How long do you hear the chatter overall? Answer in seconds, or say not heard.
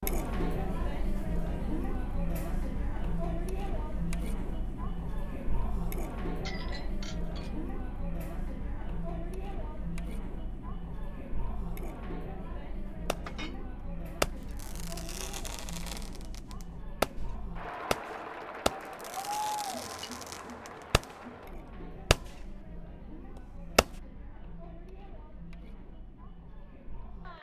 27 s.